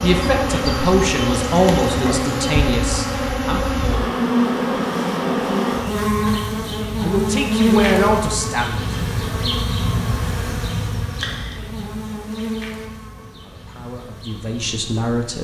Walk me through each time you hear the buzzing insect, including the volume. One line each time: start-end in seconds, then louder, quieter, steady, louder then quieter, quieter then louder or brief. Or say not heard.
0.0-15.3 quieter.